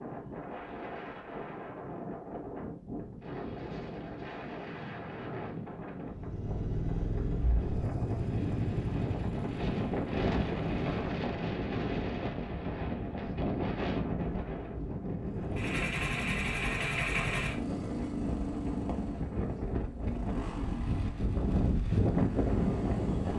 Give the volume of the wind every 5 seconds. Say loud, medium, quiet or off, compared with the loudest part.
medium, medium, loud, medium, loud.